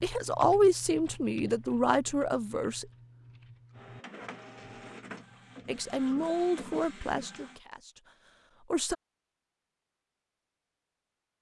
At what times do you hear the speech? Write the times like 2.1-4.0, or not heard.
0.0-2.9, 5.7-8.9.